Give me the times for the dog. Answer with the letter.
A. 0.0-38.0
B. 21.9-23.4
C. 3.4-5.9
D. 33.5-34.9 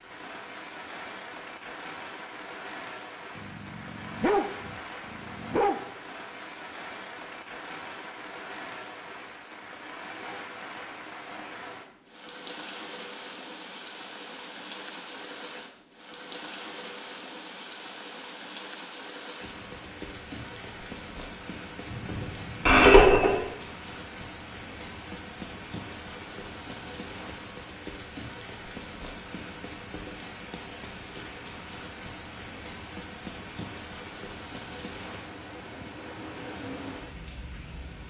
C.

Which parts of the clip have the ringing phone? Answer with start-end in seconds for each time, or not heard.
21.9-23.4.